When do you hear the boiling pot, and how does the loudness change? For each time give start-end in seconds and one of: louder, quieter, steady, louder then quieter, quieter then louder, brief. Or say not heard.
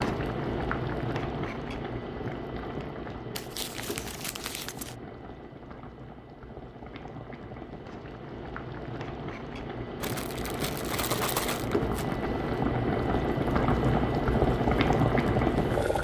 0.0-15.9 quieter then louder.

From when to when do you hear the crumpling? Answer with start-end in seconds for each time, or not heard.
3.4-5.0, 10.0-12.2.